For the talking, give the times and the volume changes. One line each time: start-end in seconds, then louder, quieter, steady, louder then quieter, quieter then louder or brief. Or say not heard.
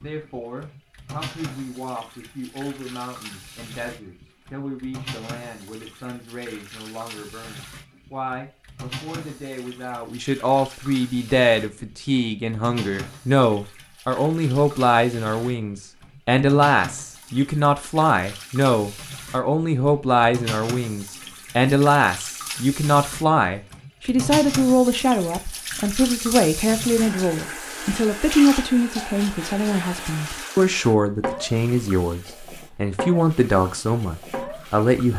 0.0-35.1 louder.